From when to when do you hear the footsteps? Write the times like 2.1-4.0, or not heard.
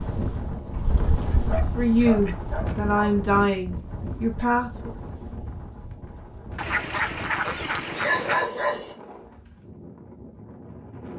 not heard.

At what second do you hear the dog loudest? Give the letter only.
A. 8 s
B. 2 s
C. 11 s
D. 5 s
A.